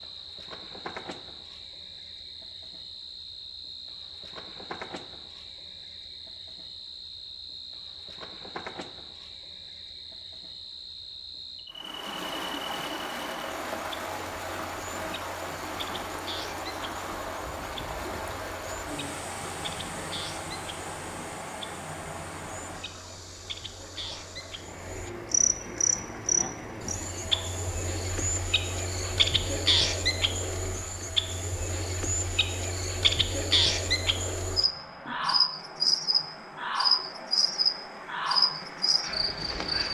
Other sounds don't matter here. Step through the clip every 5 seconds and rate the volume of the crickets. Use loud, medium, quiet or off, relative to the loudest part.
quiet, quiet, quiet, quiet, quiet, loud, loud, loud.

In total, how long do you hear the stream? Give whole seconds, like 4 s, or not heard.
28 s.